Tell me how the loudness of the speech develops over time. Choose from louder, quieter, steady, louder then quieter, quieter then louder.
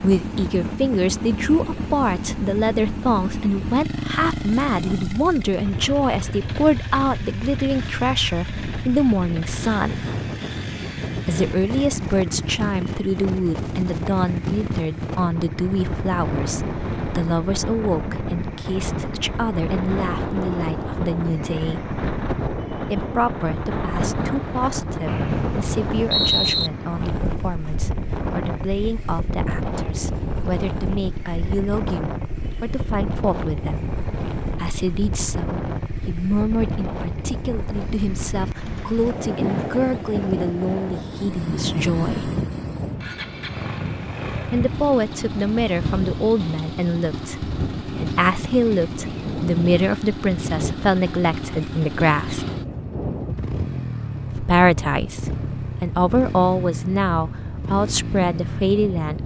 quieter then louder.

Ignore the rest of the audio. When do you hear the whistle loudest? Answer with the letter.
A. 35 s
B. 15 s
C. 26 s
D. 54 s
C.